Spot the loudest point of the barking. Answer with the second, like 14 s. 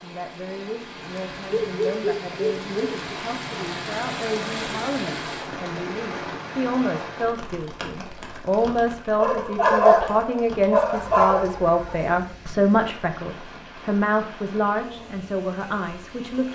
10 s.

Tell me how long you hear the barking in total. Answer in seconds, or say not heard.
4 s.